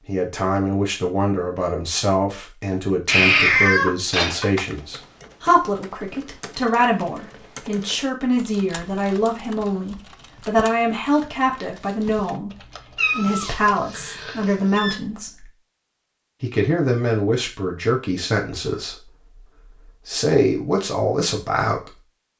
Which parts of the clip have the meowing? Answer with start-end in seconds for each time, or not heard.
3.0-4.8, 12.9-14.9.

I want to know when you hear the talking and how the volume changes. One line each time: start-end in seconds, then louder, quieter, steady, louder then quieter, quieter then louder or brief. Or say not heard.
0.1-15.5 steady
16.4-22.0 quieter then louder.